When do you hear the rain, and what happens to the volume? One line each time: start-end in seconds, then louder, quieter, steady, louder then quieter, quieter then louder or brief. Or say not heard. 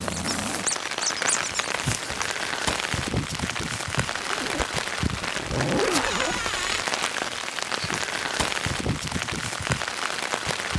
0.0-10.7 steady.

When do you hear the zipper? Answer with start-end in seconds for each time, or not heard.
4.0-6.5.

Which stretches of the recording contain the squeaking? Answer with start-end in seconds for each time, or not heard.
0.1-1.7, 6.0-6.8.